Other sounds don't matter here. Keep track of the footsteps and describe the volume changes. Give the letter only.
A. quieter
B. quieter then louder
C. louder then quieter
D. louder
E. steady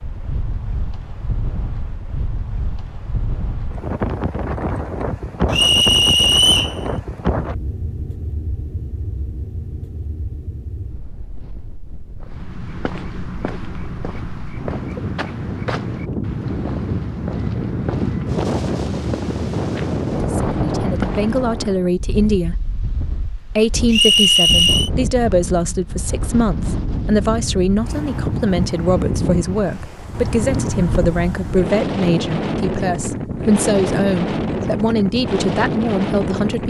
E.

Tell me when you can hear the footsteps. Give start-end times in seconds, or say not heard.
12.2-21.8.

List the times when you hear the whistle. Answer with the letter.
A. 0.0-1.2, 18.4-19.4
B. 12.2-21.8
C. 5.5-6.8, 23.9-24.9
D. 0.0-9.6
C.